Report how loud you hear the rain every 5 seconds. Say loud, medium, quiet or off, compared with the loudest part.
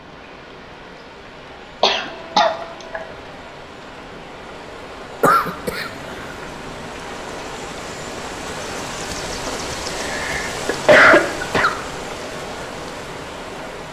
medium, loud, loud.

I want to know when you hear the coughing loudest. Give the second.
11 s.